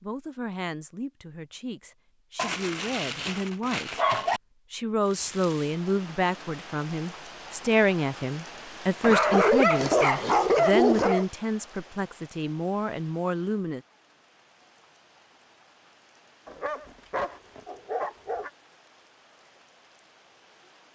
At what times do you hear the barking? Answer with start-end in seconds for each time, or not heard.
2.4-4.4, 9.0-11.2, 16.4-18.5.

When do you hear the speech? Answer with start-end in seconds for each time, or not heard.
0.0-4.0, 4.7-13.8.